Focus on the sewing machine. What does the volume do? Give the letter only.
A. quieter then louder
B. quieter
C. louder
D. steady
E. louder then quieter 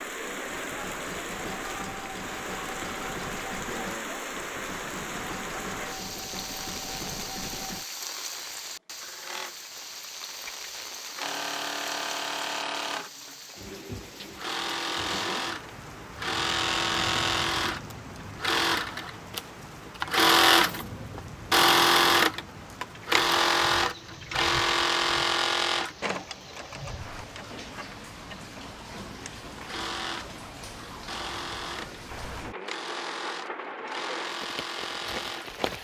E.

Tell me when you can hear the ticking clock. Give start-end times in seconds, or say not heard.
not heard.